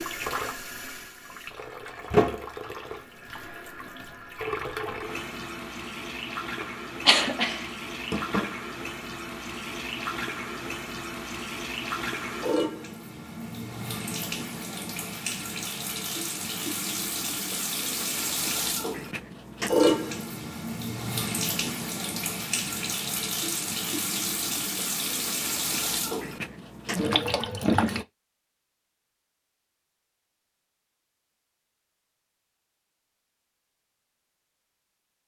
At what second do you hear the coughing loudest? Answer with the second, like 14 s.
7 s.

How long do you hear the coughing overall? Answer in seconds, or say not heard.
2 s.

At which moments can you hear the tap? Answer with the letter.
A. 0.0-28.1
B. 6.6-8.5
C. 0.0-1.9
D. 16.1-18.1
A.